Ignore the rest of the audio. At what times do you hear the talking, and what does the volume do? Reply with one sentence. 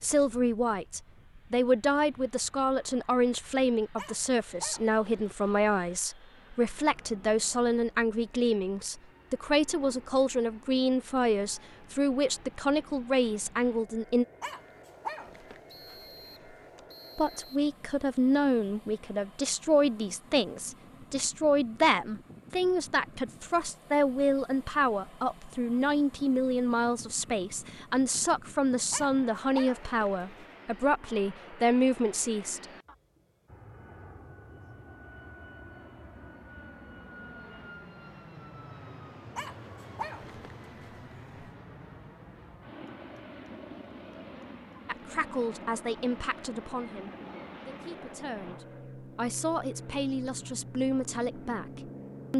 You can hear the talking from 0.0 to 14.2 s, at a steady volume; from 17.1 to 32.6 s, at a steady volume; and from 44.9 to 52.3 s, getting quieter then louder.